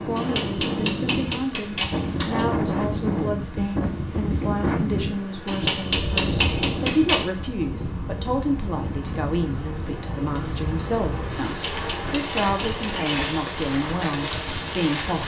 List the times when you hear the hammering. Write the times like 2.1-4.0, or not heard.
0.1-2.5, 5.5-7.3, 11.4-13.3.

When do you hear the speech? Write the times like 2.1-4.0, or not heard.
0.1-15.2.